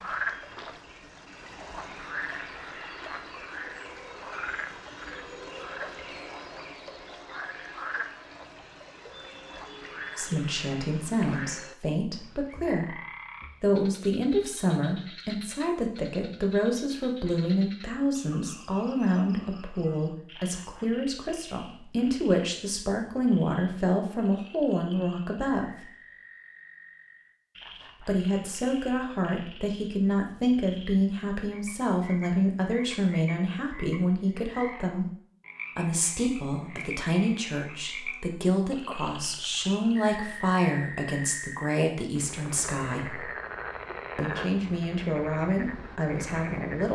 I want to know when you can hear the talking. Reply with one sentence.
The talking can be heard from 10.2 to 13.0 s, from 13.6 to 25.9 s, from 28.0 to 35.1 s, from 35.8 to 43.2 s and from 44.1 to 46.8 s.